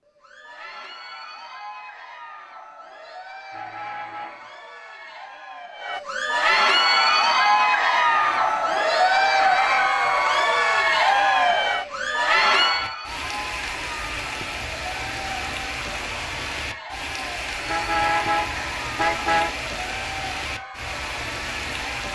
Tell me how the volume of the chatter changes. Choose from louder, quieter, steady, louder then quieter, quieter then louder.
louder then quieter.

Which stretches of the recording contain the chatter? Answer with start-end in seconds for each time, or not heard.
0.1-22.0.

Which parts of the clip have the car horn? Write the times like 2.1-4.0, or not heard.
3.5-4.5, 8.1-9.9, 17.6-19.5.